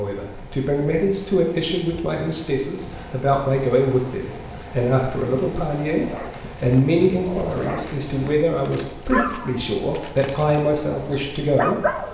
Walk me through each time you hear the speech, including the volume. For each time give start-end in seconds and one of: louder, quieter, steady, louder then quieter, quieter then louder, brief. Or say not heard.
0.0-11.8 steady.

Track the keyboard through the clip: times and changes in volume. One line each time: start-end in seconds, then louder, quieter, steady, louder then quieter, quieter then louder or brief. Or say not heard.
not heard.